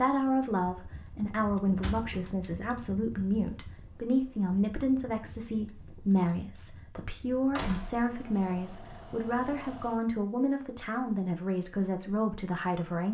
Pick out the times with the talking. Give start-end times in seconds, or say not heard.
0.0-13.0.